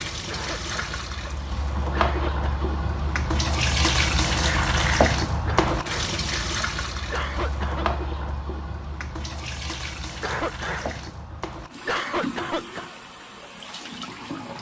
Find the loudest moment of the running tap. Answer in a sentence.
The loudest moment of the running tap is at 5 seconds.